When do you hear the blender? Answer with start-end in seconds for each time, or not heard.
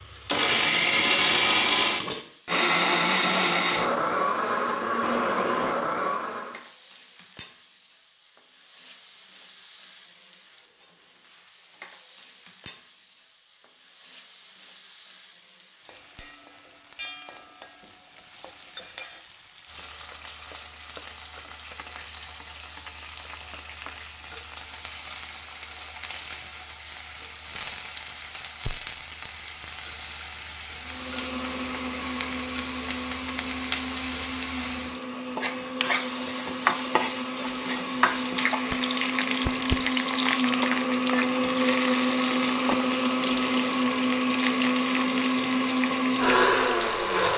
0.0-6.6, 30.8-47.3.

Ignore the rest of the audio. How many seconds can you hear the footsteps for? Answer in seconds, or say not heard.
not heard.